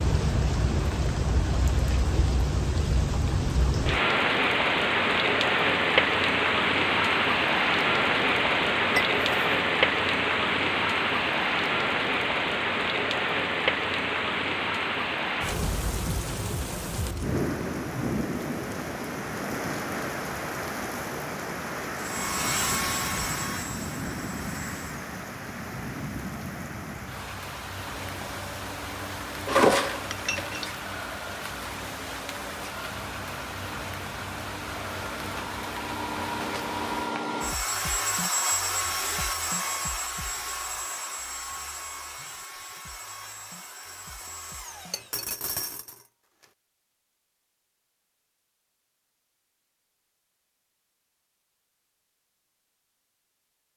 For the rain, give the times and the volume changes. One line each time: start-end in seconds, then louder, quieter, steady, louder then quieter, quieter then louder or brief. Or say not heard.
0.0-37.1 quieter.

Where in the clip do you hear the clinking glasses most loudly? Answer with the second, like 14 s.
30 s.